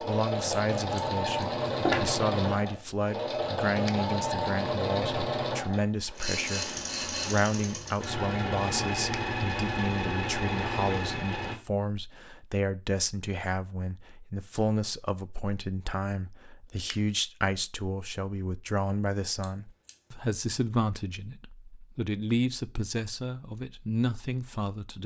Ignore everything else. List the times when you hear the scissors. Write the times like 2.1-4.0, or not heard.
0.5-2.0, 19.4-19.9.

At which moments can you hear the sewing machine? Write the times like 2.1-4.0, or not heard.
0.0-11.6.